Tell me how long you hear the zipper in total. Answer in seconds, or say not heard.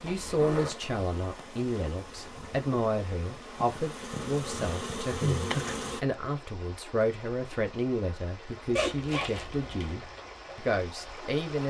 2 s.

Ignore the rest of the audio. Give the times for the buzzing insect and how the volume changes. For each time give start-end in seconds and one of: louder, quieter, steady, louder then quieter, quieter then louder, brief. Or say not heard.
0.0-6.0 louder.